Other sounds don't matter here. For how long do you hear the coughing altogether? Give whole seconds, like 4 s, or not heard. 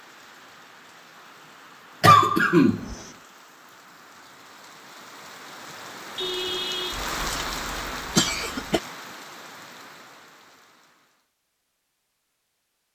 3 s.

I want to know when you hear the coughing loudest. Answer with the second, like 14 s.
2 s.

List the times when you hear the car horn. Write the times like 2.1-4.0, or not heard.
5.7-7.0.